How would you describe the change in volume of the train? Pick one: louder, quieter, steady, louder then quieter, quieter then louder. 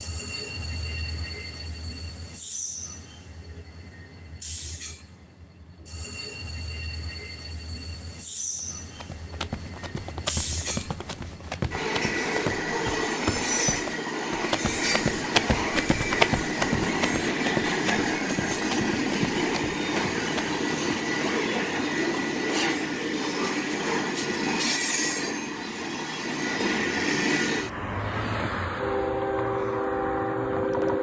louder.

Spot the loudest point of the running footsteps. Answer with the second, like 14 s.
16 s.